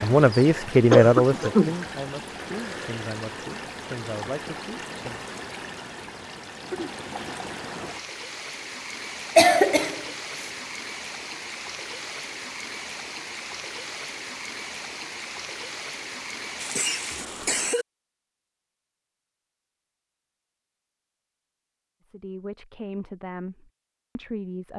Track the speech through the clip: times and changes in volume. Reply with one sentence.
You can hear the speech from 0.0 to 5.2 s, getting quieter; and briefly from 22.1 to 24.7 s.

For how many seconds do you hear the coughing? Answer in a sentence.
You can hear the coughing for 3 seconds altogether.